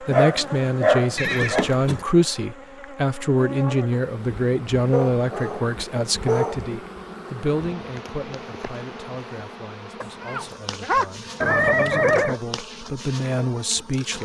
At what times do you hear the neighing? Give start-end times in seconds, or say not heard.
1.1-2.0, 11.4-12.4.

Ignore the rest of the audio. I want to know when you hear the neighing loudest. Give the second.
12 s.